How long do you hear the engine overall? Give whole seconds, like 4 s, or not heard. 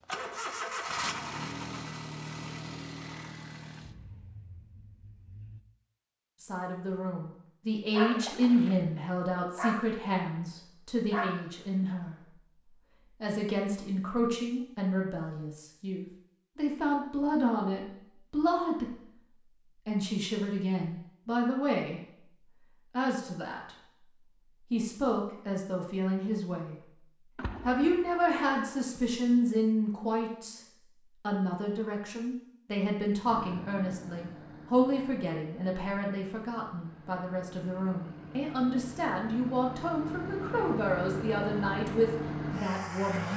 16 s.